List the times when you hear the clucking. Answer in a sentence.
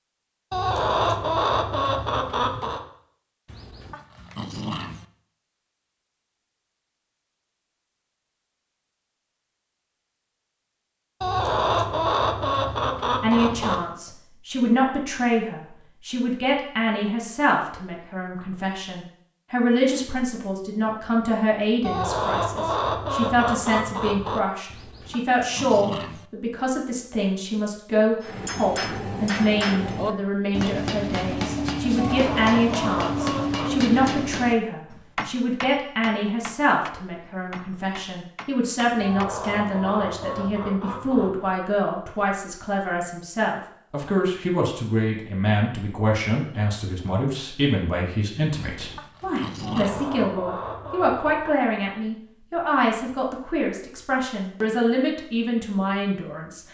You can hear the clucking from 0.5 to 2.8 s, from 11.2 to 13.8 s, from 21.8 to 24.4 s, from 31.9 to 33.9 s, from 39.0 to 41.5 s and from 49.6 to 51.5 s.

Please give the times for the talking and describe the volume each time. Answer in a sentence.
The talking can be heard from 13.2 to 56.6 s, at a steady volume.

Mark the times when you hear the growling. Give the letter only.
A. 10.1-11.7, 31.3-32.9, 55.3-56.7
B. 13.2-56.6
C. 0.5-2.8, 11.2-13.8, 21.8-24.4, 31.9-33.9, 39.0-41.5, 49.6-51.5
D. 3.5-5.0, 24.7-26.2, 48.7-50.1
D.